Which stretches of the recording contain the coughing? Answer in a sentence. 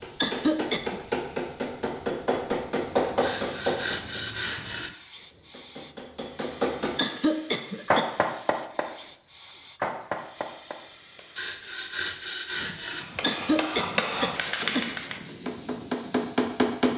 The coughing can be heard from 0.2 to 1.0 s, from 7.0 to 8.1 s and from 13.2 to 14.8 s.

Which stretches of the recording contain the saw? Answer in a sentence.
You can hear the saw from 3.2 to 4.9 s and from 11.3 to 13.1 s.